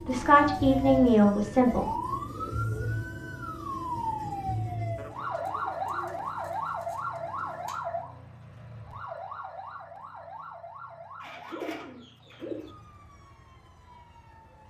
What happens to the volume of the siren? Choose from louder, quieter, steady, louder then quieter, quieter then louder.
quieter.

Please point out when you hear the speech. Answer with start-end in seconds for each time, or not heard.
0.1-1.9.